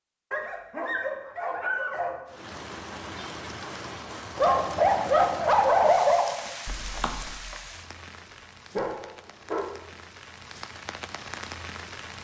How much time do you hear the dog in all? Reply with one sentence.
You can hear the dog for 5 seconds altogether.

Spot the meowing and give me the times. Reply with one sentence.
You can hear the meowing from 6.7 to 7.5 s.